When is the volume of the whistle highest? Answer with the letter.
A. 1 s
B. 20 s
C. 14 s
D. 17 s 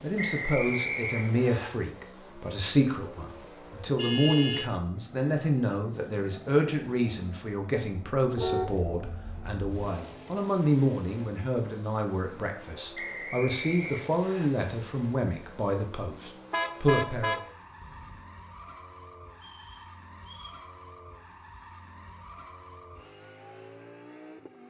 A.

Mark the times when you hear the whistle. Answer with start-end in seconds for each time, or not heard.
0.1-1.7, 12.9-14.5, 19.4-20.6.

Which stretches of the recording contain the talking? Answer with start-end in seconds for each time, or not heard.
0.0-17.4.